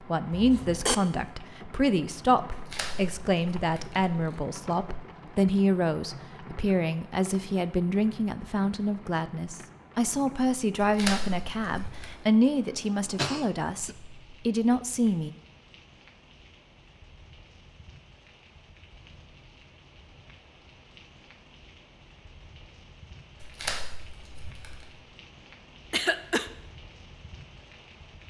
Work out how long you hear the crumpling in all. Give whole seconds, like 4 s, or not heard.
5 s.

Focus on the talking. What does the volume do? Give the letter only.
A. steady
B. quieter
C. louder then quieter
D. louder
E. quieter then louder
A.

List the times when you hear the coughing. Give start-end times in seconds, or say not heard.
0.3-0.9, 13.2-13.9, 25.9-26.5.